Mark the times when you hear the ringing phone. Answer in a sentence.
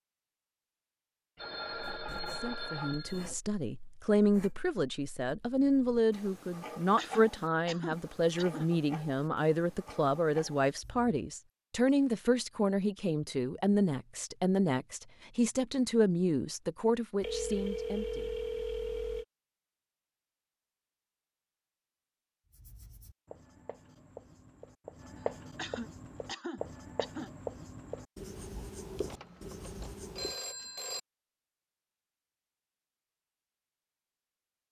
The ringing phone can be heard from 1.4 to 3.3 s, from 17.2 to 19.2 s and from 29.1 to 31.0 s.